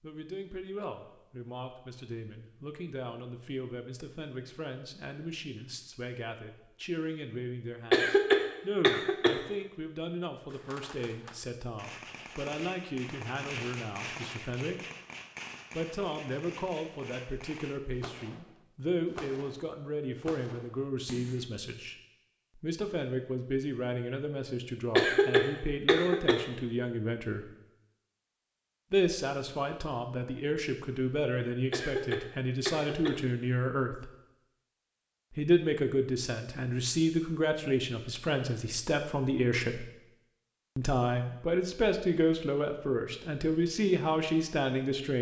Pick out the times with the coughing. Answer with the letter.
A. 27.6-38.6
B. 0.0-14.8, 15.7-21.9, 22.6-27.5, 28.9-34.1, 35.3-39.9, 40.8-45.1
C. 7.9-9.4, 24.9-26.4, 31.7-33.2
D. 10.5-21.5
C.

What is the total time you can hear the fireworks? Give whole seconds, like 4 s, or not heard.
11 s.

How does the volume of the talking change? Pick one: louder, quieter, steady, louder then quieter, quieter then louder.
louder.